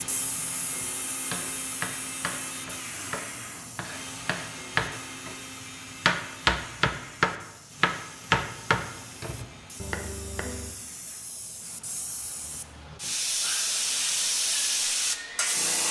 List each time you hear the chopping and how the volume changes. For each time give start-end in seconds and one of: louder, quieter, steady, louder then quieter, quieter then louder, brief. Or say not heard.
0.8-10.8 louder then quieter.